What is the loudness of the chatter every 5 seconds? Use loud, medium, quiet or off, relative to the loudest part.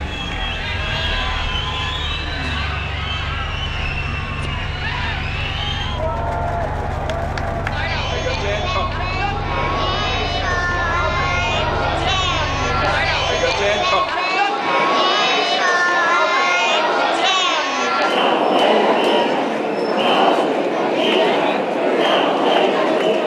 medium, medium, loud, loud, loud.